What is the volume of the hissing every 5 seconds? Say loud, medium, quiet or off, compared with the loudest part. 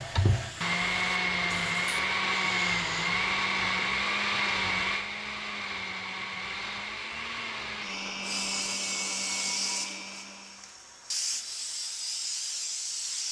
medium, loud, loud.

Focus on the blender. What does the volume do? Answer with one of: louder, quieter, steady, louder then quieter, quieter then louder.
quieter.